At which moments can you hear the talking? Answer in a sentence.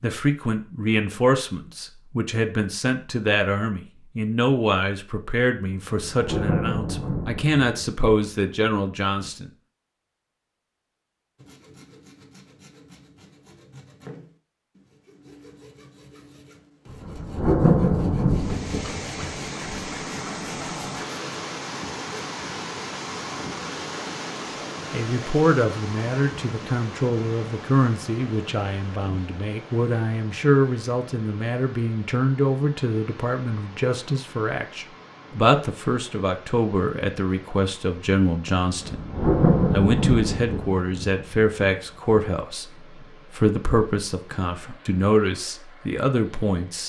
You can hear the talking from 0.0 to 9.5 s and from 24.9 to 46.8 s.